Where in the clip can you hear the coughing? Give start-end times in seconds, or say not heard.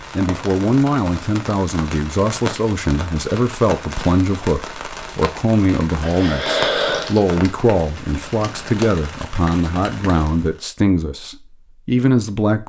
6.0-7.2.